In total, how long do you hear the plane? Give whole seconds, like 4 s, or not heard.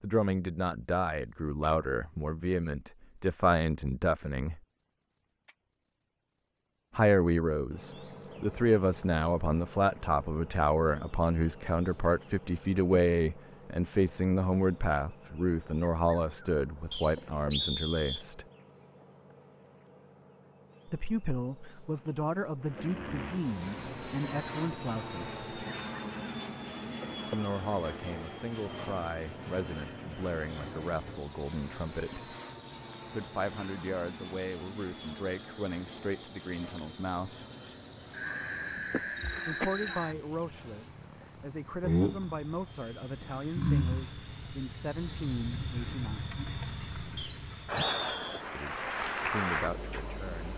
28 s.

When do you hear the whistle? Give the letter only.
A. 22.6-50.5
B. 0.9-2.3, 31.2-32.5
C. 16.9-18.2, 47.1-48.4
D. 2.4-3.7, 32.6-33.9
C.